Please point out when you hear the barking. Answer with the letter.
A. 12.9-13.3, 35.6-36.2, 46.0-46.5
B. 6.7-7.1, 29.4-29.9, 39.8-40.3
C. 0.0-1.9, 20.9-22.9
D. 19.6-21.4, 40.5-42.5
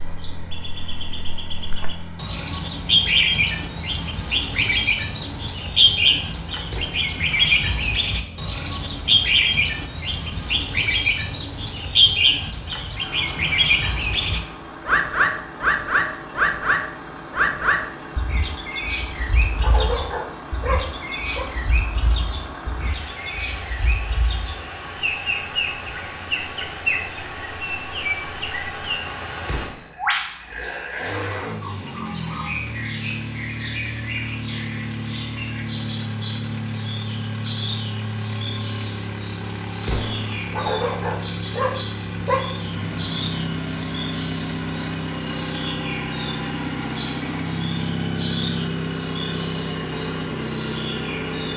D.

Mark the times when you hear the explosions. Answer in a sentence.
The explosions can be heard from 6.7 to 7.1 s, from 29.4 to 29.9 s and from 39.8 to 40.3 s.